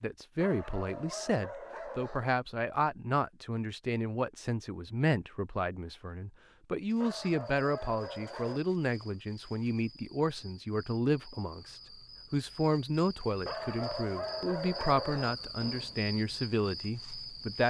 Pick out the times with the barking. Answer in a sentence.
The barking can be heard from 0.4 to 2.4 s, from 7.0 to 8.6 s and from 13.4 to 15.4 s.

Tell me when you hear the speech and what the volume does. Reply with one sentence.
The speech can be heard from 0.0 to 17.6 s, at a steady volume.